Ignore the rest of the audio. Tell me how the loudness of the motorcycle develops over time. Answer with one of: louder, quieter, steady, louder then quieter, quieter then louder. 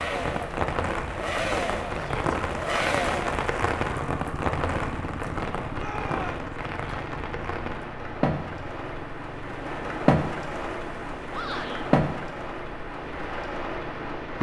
quieter.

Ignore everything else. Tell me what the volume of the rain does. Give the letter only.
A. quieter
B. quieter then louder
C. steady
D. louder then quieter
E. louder
C.